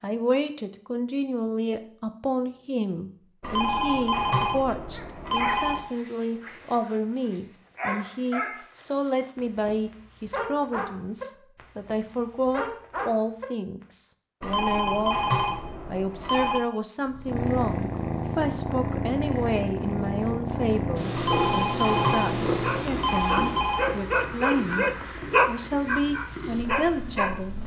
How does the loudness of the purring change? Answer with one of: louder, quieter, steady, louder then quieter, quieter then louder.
quieter.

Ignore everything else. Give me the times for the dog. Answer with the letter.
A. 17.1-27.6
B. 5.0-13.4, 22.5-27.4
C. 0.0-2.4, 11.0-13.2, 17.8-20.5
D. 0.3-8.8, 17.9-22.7
B.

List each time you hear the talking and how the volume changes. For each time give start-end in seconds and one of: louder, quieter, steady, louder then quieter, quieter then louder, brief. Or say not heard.
0.0-15.2 steady
15.9-27.6 steady.